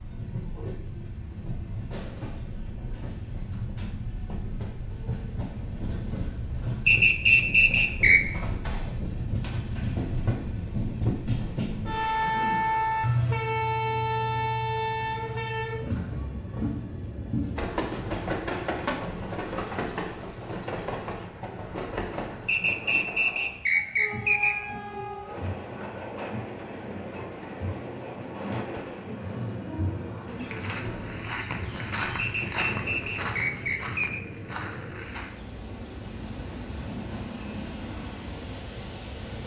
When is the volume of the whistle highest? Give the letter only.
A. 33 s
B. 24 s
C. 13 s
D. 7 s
D.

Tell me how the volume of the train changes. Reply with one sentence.
The volume of the train goes up, then down.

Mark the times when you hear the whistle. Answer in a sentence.
You can hear the whistle from 6.8 to 8.2 s, from 22.4 to 24.6 s and from 32.1 to 34.2 s.